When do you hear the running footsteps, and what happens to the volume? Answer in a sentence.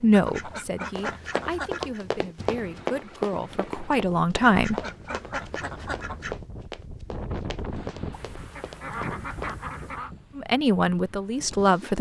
The running footsteps can be heard from 0.9 to 9.6 s, getting quieter.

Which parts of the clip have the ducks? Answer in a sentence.
You can hear the ducks from 0.1 to 2.0 s, from 4.5 to 6.3 s and from 8.1 to 10.1 s.